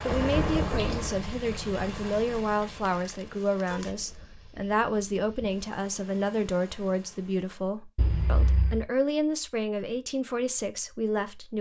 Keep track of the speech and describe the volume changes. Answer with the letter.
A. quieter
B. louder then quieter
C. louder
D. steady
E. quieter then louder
D.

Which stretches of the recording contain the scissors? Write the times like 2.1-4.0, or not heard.
2.9-4.2, 8.0-8.8.